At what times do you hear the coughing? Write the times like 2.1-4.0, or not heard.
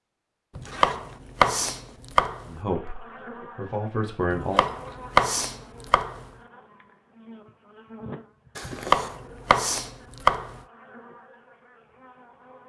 not heard.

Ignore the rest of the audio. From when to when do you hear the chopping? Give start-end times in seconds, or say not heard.
0.6-2.5, 4.3-6.2, 8.7-10.6.